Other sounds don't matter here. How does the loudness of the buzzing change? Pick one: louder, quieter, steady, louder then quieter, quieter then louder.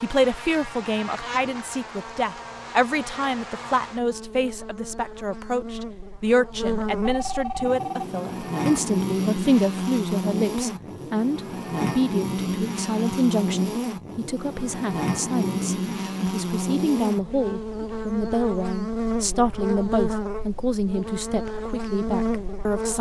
louder.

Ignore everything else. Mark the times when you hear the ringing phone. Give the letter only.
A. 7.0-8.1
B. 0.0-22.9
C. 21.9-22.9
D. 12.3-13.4
A.